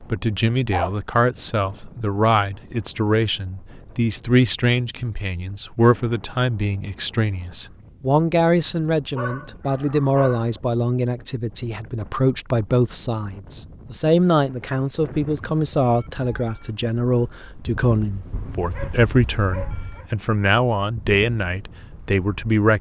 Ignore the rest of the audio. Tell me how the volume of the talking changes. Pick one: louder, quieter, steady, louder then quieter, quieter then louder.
steady.